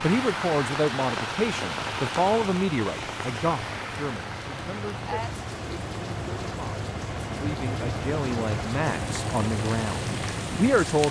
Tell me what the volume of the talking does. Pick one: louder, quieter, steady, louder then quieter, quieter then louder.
quieter then louder.